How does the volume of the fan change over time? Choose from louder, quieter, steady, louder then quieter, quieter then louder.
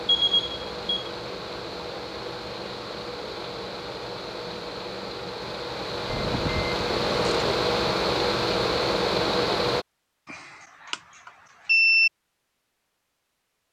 louder.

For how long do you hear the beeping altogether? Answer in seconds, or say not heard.
4 s.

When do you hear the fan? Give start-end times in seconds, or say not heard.
0.0-9.8.